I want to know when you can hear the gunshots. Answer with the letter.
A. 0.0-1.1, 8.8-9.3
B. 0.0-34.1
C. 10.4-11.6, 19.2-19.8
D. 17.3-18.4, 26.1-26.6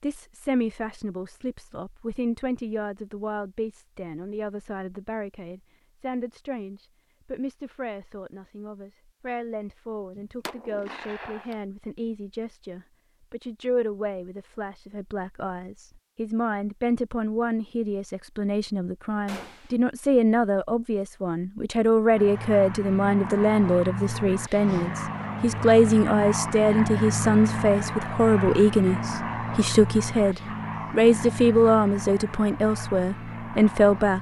C.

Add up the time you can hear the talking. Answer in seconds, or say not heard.
34 s.